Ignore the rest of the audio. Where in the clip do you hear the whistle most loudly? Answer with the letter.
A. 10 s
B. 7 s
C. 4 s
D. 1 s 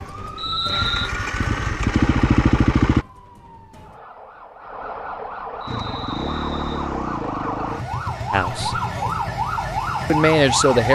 D.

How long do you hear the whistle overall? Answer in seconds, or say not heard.
2 s.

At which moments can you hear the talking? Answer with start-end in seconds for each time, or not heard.
8.3-8.8, 10.1-10.8.